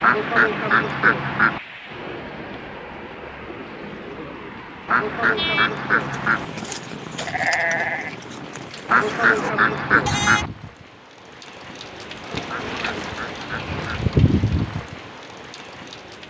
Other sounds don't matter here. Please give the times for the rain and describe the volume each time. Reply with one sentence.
The rain can be heard from 0.0 to 16.2 s, getting louder.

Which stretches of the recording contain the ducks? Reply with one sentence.
The ducks can be heard from 0.0 to 1.6 s, from 4.8 to 6.5 s, from 8.8 to 10.5 s and from 12.4 to 14.1 s.